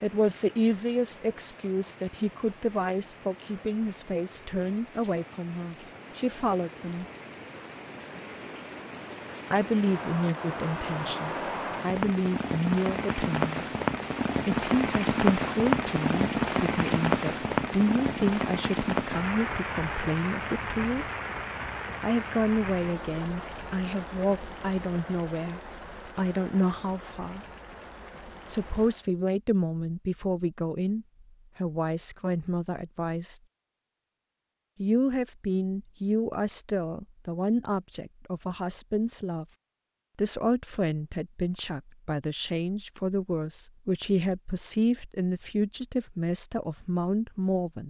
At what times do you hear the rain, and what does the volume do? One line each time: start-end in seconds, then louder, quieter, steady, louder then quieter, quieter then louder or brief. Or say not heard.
0.0-29.1 louder then quieter.